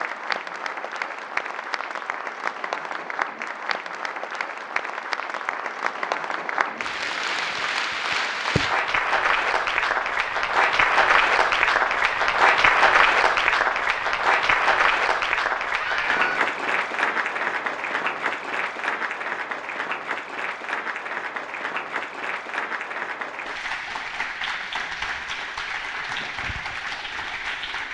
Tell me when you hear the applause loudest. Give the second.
13 s.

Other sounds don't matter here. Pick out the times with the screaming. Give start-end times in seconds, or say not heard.
15.8-16.4.